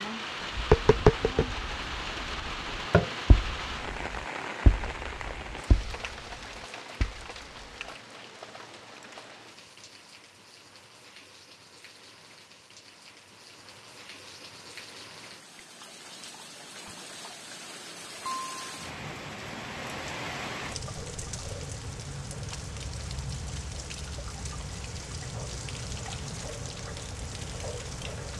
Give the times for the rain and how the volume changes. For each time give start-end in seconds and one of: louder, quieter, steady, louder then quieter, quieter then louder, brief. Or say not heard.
0.0-28.3 quieter then louder.